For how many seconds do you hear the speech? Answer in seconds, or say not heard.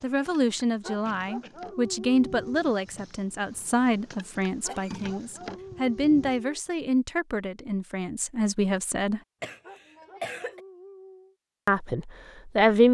10 s.